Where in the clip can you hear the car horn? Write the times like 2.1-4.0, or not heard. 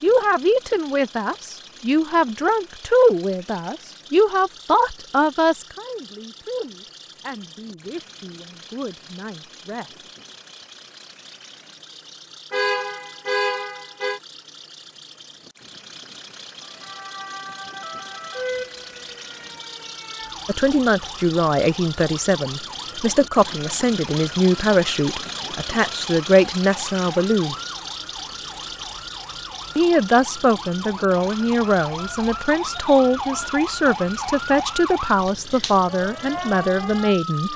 12.5-14.2.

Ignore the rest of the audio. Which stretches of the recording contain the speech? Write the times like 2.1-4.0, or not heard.
0.0-10.1, 20.4-27.6, 29.8-37.5.